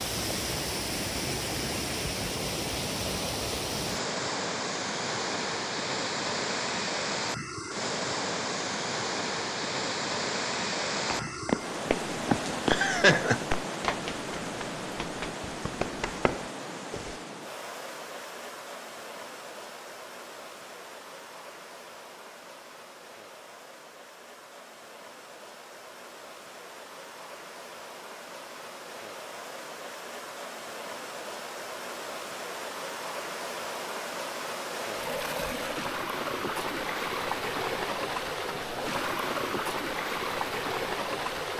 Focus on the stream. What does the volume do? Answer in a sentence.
The volume of the stream goes down, then up.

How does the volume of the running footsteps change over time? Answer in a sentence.
The volume of the running footsteps goes down, then up.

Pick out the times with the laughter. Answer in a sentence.
You can hear the laughter from 12.7 to 13.6 s.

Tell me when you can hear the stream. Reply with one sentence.
You can hear the stream from 0.0 to 41.5 s.